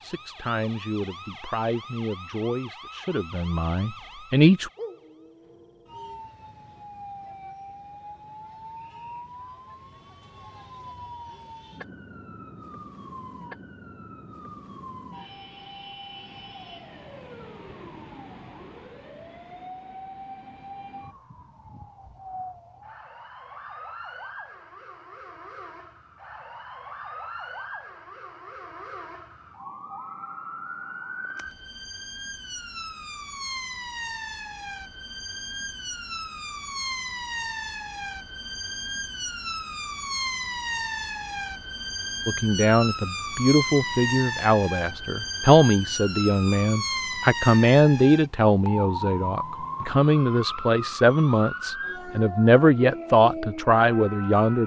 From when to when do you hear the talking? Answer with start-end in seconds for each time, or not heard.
0.0-4.7, 42.2-54.6.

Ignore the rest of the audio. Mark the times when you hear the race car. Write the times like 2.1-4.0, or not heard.
not heard.